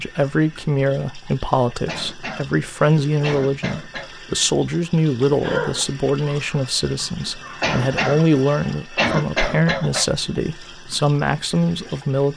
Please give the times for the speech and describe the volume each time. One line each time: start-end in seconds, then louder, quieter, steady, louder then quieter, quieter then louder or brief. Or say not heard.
0.0-12.3 steady.